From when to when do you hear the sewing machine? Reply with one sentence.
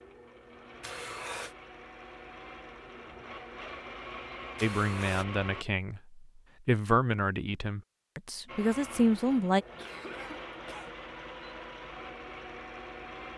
The sewing machine can be heard from 0.0 to 5.7 s and from 8.4 to 13.3 s.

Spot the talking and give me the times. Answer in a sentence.
The talking can be heard from 4.6 to 9.7 s.